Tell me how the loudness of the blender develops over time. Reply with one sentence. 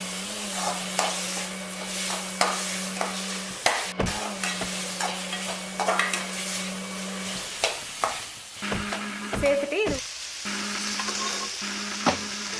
The volume of the blender stays about the same.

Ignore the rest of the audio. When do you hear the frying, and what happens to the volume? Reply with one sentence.
The frying can be heard from 0.0 to 12.5 s, at a steady volume.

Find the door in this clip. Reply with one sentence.
You can hear the door from 4.0 to 4.7 s and from 8.7 to 10.1 s.